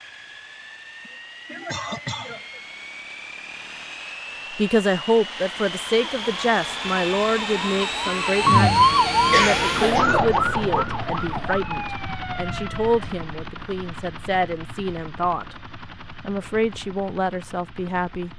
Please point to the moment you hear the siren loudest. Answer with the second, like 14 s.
9 s.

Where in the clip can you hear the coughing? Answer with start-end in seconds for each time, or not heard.
1.1-2.6, 9.3-10.4.